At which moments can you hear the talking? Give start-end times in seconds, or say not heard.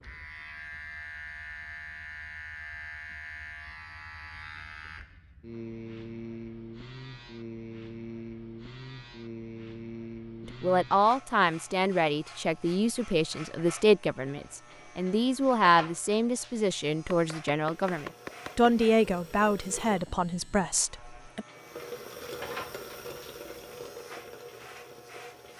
10.6-21.4.